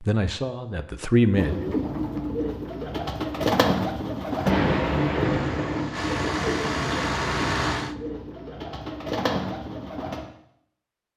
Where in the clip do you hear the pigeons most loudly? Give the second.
4 s.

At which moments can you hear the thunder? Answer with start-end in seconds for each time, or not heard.
4.5-5.8.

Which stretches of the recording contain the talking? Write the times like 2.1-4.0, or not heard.
0.0-1.8.